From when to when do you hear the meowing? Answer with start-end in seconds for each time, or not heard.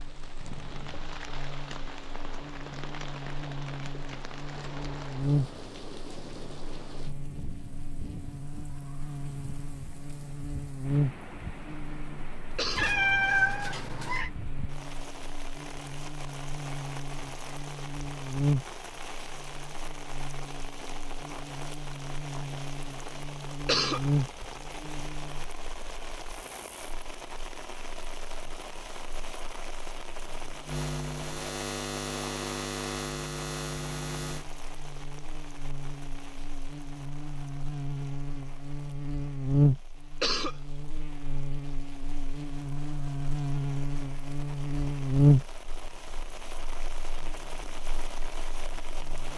12.8-14.3.